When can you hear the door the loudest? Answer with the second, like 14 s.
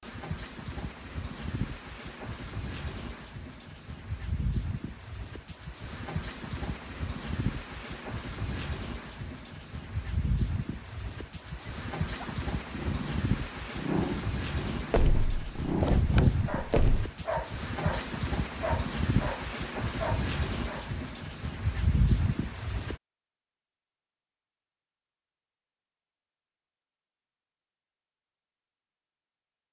16 s.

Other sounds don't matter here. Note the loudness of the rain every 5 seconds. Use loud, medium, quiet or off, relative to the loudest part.
medium, medium, loud, loud, loud, off.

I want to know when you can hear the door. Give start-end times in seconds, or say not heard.
14.9-17.1.